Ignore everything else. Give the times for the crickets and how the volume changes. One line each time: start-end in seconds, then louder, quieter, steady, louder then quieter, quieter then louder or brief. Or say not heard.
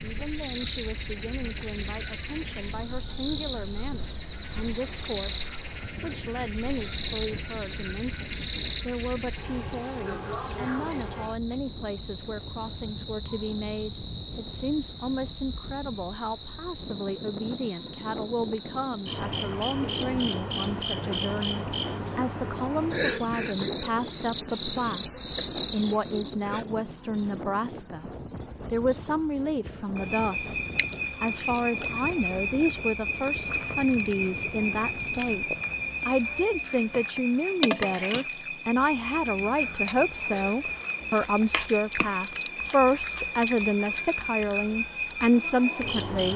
0.0-46.3 steady.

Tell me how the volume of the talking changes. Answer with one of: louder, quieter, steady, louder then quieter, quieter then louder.
louder.